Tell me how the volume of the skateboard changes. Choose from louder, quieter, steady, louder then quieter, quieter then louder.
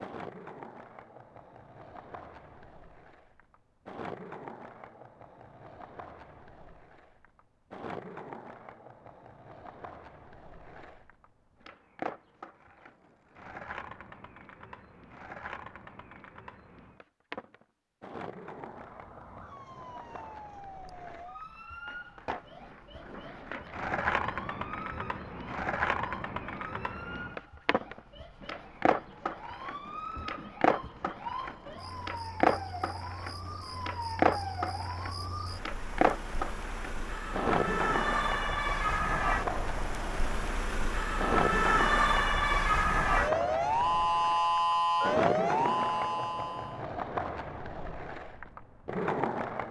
louder.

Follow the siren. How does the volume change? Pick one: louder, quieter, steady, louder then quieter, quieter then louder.
louder.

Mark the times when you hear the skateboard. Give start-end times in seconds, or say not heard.
0.0-49.6.